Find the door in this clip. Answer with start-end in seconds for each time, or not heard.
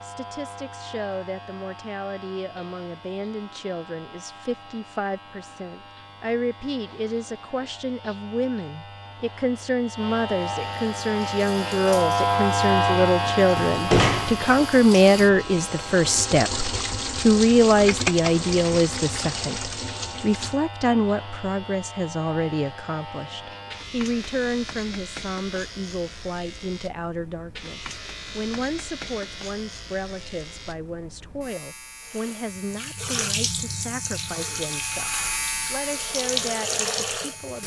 13.6-14.5.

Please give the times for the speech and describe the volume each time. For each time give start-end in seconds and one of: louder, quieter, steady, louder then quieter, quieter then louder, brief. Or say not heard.
0.0-37.6 louder then quieter.